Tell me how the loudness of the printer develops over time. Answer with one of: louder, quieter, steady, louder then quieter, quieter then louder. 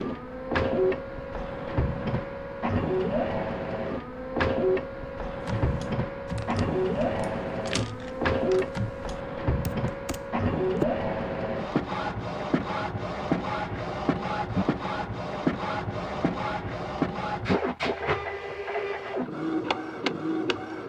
steady.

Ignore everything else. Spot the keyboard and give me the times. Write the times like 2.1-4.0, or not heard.
5.4-10.8.